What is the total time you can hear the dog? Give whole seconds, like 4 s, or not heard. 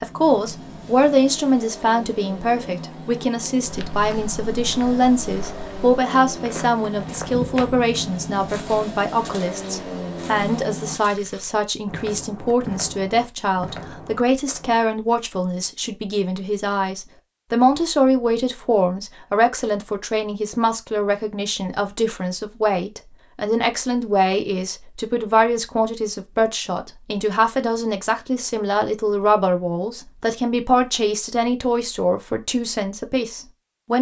not heard.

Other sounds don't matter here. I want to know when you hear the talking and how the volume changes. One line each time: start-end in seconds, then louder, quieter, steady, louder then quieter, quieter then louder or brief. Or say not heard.
0.0-33.9 steady.